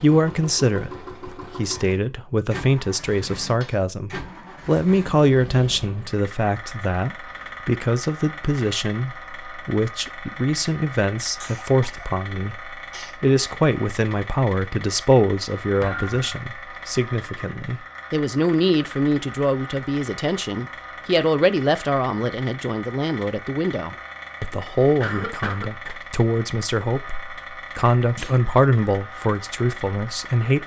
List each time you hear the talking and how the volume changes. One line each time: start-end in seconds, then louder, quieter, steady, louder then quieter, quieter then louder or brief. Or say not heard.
0.0-30.6 steady.